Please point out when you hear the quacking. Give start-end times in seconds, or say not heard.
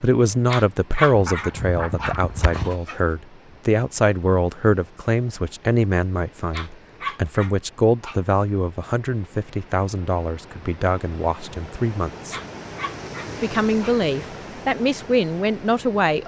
1.1-2.8.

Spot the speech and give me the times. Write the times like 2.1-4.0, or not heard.
0.0-12.3, 13.4-16.2.